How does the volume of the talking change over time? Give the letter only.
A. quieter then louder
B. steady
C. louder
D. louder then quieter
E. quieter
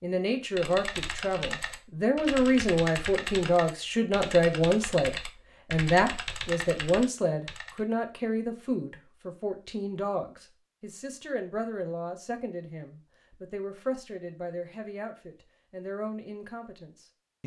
E.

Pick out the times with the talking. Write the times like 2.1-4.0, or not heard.
0.0-17.4.